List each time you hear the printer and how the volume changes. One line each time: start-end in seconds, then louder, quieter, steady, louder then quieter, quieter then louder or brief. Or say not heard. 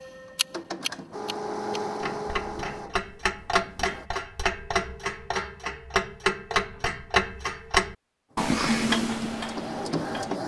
0.0-4.1 louder then quieter
8.3-10.4 brief.